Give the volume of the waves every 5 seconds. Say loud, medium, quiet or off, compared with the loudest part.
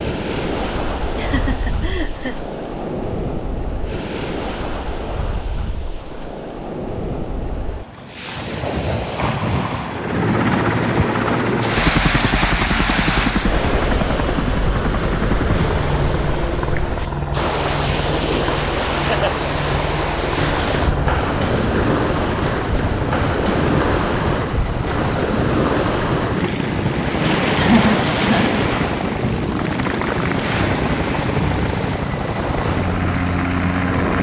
medium, medium, loud, loud, loud, loud, medium.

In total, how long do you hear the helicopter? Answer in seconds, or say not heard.
24 s.